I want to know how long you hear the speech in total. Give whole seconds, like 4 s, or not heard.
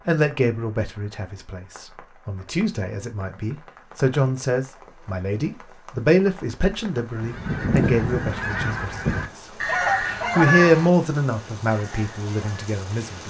12 s.